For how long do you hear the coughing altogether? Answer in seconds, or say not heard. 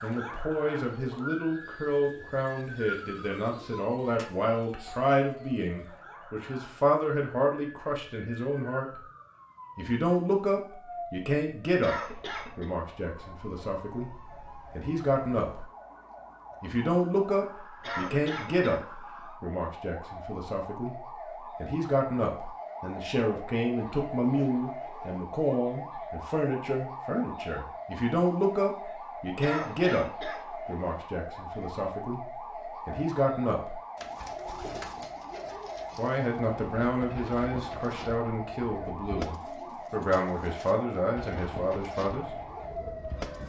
3 s.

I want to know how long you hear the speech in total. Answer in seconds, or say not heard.
38 s.